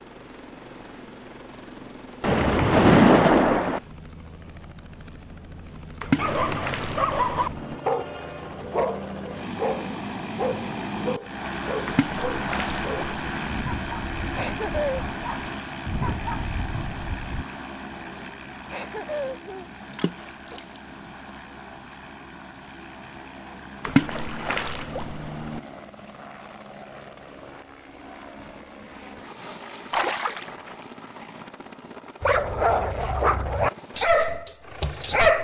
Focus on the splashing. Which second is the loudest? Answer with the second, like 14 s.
3 s.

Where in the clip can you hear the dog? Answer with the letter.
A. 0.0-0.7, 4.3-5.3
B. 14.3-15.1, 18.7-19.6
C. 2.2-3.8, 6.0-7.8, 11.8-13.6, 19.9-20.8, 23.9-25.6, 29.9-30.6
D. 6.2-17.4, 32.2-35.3
D.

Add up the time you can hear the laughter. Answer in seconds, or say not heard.
2 s.